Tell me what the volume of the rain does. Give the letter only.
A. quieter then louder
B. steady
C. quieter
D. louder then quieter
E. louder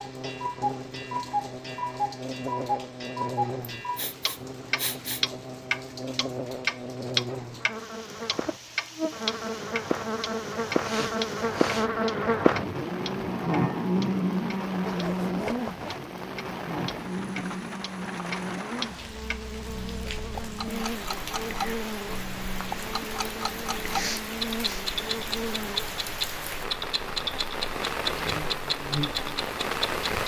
E.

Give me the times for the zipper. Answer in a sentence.
The zipper can be heard from 14.8 to 16.0 s.